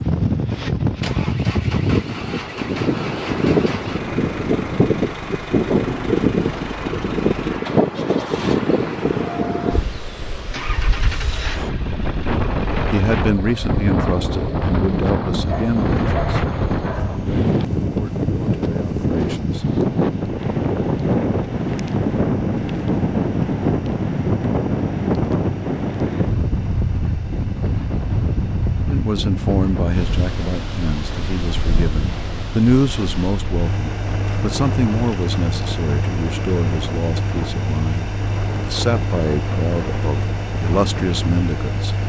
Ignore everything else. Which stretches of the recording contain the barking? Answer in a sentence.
You can hear the barking from 15.4 to 17.4 s.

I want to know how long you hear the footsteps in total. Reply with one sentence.
The footsteps can't be heard in this clip.